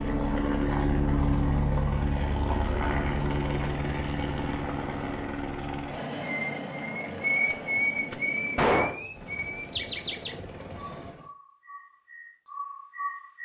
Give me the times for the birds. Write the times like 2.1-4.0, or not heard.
6.2-13.3.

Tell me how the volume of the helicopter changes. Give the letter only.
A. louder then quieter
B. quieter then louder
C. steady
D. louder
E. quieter
E.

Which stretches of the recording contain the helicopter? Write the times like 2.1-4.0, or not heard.
0.0-11.3.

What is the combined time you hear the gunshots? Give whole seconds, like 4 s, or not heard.
2 s.